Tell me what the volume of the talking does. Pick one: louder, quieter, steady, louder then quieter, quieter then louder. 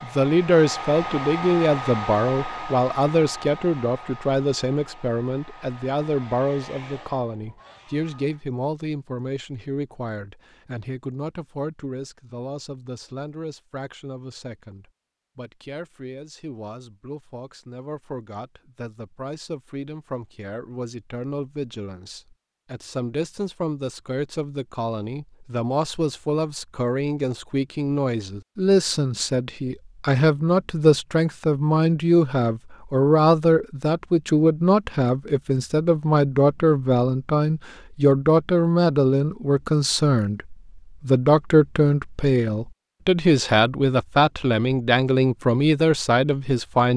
quieter then louder.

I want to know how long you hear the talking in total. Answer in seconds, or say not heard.
47 s.